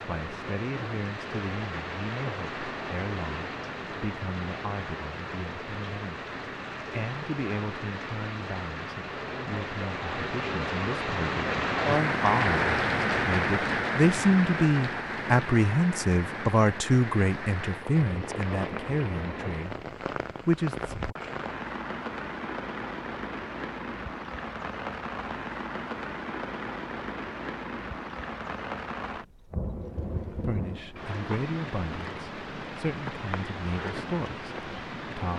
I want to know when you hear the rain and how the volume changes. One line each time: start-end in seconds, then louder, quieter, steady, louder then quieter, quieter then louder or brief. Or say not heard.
0.0-35.3 louder then quieter.